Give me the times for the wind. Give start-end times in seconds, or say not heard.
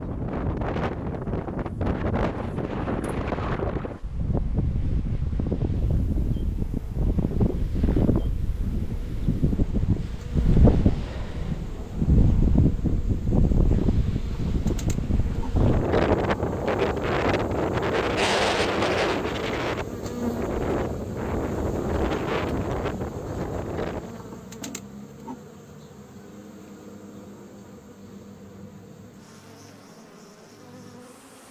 0.0-24.2.